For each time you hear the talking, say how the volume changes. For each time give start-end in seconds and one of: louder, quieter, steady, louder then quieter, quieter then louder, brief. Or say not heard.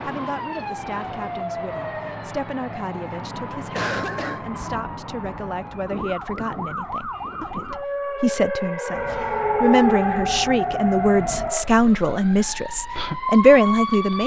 0.0-14.2 louder.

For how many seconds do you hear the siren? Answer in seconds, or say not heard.
14 s.